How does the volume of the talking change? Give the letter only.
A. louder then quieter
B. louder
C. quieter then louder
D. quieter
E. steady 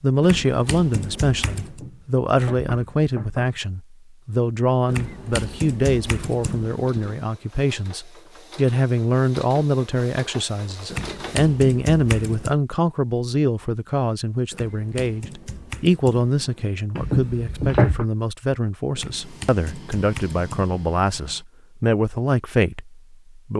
E.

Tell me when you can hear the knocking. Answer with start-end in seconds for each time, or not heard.
1.6-3.6, 16.9-18.1.